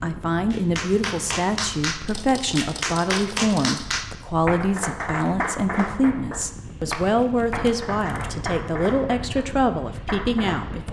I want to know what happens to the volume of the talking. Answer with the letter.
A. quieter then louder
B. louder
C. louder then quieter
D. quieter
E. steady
E.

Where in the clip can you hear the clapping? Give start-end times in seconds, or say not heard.
0.5-10.8.